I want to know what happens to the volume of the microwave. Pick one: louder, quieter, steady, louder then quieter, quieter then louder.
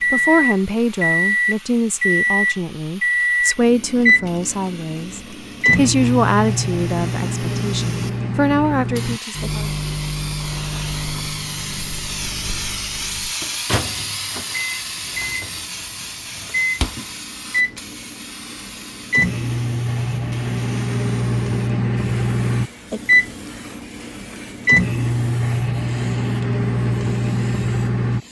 quieter then louder.